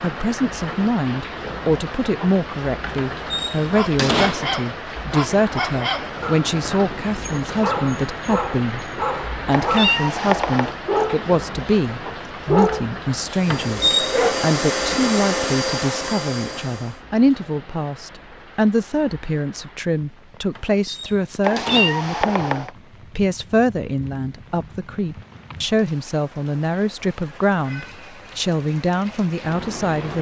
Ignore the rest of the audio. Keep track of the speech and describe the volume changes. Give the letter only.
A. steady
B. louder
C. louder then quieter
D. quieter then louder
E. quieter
A.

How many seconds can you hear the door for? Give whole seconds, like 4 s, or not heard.
4 s.